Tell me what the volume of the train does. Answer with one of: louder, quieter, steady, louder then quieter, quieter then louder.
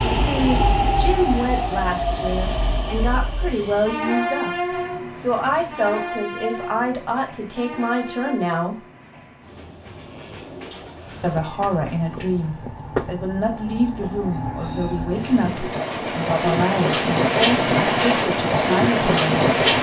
quieter then louder.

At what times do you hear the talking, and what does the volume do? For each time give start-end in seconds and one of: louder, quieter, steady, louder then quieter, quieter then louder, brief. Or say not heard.
0.2-8.8 steady
11.2-19.5 steady.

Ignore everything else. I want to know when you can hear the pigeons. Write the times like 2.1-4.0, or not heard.
not heard.